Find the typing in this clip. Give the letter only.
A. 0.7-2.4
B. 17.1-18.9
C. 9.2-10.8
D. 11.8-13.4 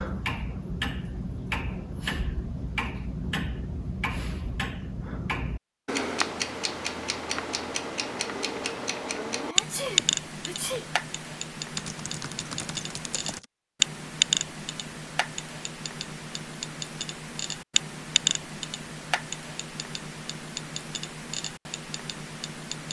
D.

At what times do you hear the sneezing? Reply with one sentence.
The sneezing can be heard from 9.2 to 10.8 s.